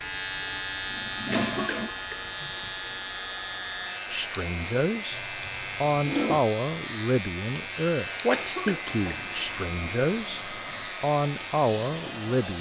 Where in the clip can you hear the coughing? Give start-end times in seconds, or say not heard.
1.3-2.2, 8.3-9.0.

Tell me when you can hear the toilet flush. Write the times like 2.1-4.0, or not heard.
0.9-1.9, 5.1-6.4, 8.8-10.9.